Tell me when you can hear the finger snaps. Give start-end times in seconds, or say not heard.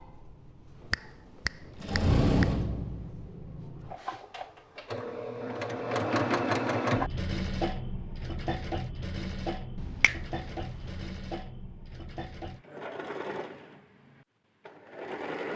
0.9-2.5, 9.8-11.1.